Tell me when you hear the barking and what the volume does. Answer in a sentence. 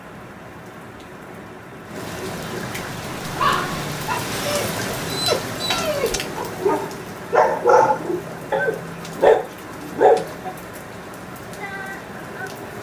The barking can be heard from 3.2 to 10.5 s, getting louder.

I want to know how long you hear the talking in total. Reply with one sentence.
The talking can't be heard in this clip.